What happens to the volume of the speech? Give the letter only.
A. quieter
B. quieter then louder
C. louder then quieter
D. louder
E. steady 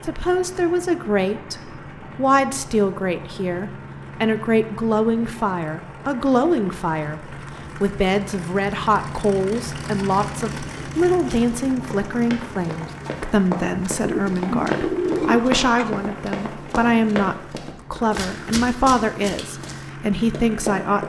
E.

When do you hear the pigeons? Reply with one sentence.
You can hear the pigeons from 14.0 to 15.9 s.